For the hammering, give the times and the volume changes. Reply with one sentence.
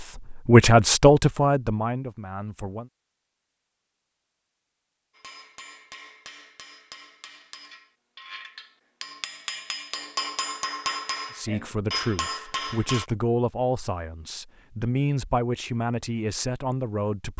The hammering can be heard from 5.2 to 13.1 s, getting louder.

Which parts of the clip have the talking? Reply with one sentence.
The talking can be heard from 0.0 to 2.9 s and from 11.3 to 17.3 s.